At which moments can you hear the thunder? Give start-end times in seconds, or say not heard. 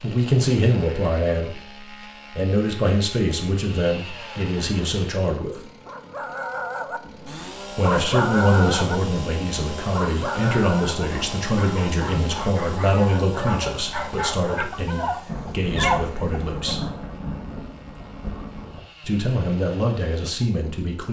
15.2-18.8.